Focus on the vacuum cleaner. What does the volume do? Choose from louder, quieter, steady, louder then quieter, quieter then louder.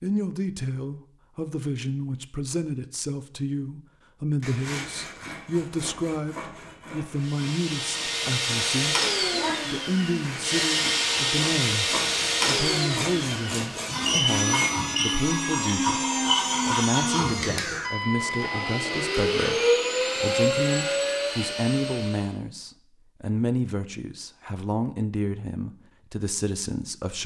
steady.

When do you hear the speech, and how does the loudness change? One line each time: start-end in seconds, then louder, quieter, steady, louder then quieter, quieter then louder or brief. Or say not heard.
0.0-8.9 steady
9.6-27.2 steady.